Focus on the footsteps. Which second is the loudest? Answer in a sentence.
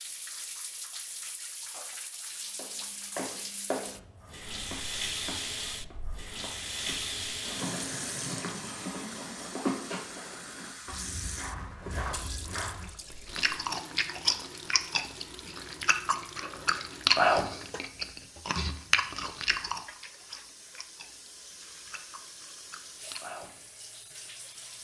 The loudest moment of the footsteps is at 10 seconds.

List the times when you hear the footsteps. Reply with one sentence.
The footsteps can be heard from 2.5 to 13.6 s.